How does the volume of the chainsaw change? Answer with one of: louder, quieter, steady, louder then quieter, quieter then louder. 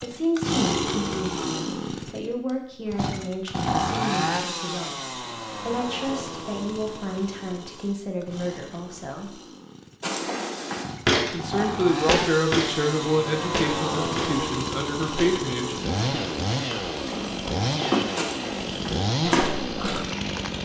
quieter then louder.